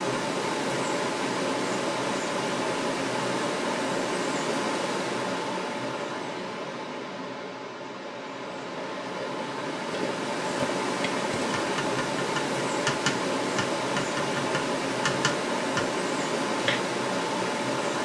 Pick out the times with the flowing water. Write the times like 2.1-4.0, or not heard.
0.0-18.0.